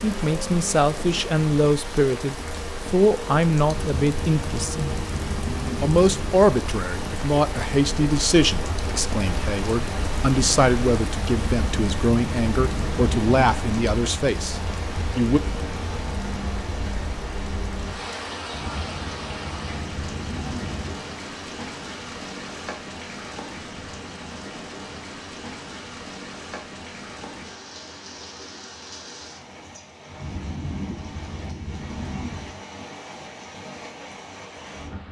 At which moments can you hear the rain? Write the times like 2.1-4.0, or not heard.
0.0-35.0.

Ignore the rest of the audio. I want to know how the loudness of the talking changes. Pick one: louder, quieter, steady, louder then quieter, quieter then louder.
steady.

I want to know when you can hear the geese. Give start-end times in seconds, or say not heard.
not heard.